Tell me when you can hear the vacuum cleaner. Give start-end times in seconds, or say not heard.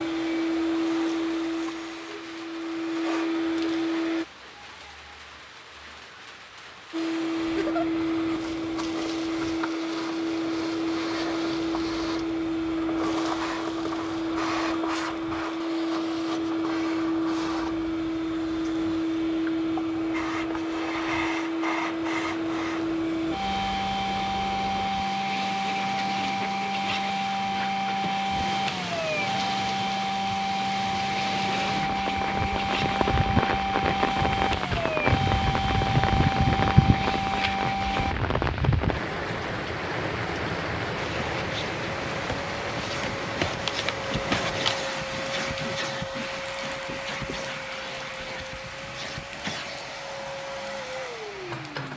0.0-4.2, 6.9-38.1, 41.0-51.9.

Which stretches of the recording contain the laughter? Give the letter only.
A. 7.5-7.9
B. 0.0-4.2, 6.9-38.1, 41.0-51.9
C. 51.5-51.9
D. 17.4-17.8
A.